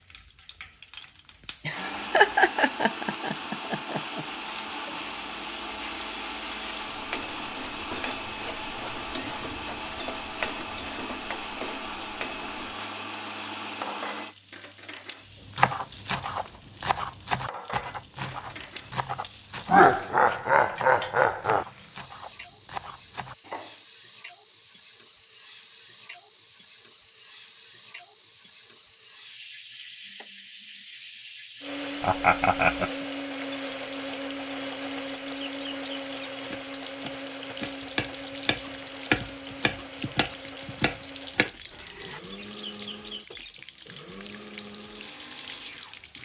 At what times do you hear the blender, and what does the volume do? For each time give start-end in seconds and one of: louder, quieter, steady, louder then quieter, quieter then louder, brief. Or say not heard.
1.7-14.3 steady
31.6-46.2 quieter.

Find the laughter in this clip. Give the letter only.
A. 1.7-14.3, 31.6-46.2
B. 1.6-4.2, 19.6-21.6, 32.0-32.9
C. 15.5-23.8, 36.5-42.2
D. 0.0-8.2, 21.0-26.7
B.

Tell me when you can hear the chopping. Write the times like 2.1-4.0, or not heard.
15.5-23.8, 36.5-42.2.